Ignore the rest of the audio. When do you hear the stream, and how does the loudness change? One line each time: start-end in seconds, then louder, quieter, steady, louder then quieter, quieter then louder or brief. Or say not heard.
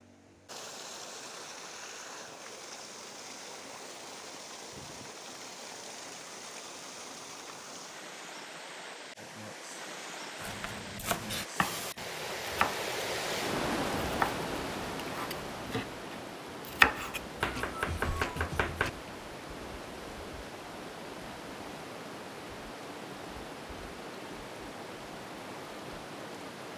0.0-26.7 louder then quieter.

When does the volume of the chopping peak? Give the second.
17 s.